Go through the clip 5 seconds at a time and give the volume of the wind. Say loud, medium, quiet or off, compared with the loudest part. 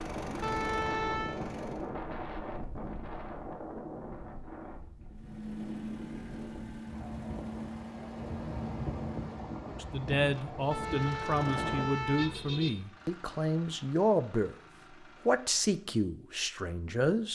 loud, loud, loud, off.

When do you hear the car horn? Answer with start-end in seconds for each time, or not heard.
0.4-1.4, 10.7-12.7.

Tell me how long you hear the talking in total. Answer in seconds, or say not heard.
7 s.